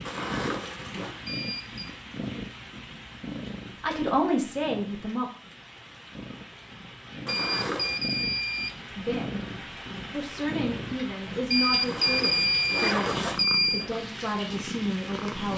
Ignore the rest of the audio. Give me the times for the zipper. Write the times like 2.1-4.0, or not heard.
0.1-1.1, 7.2-8.0, 11.8-13.3.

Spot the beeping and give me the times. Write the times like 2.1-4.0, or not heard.
1.2-1.9, 7.2-8.8, 11.5-13.9.